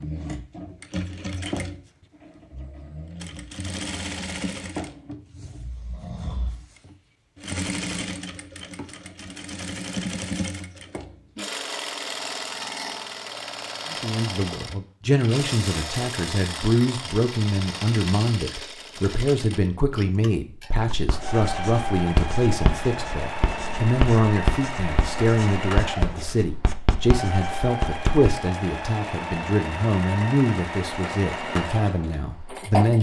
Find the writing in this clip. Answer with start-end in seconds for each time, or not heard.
20.9-28.4.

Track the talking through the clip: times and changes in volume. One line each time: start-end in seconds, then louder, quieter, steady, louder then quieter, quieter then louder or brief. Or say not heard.
13.8-32.9 steady.